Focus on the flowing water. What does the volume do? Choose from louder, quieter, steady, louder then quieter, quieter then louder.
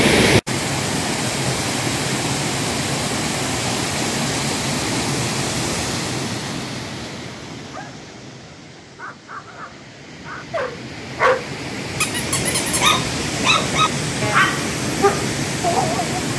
quieter then louder.